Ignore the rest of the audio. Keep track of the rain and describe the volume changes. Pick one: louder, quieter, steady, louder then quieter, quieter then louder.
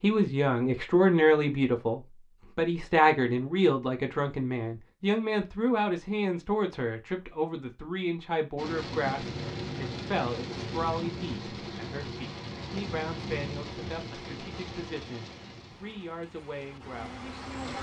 quieter.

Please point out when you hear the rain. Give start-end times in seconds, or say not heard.
8.6-17.7.